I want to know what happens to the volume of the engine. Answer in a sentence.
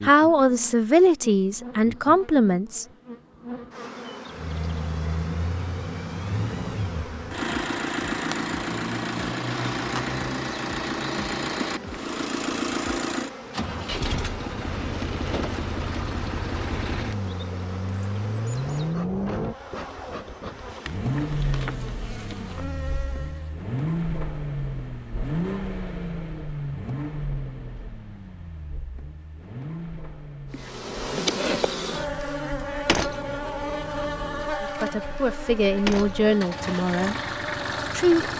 The volume of the engine goes down.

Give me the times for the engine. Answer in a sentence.
The engine can be heard from 4.3 to 38.3 s.